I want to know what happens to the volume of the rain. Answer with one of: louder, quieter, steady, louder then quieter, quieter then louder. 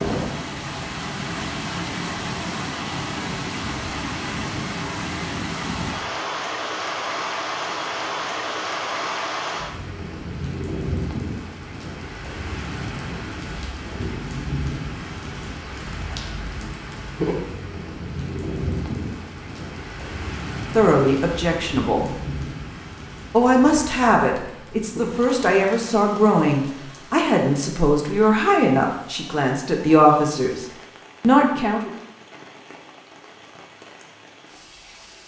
quieter.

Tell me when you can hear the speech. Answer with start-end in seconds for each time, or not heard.
20.8-22.1, 23.3-31.9.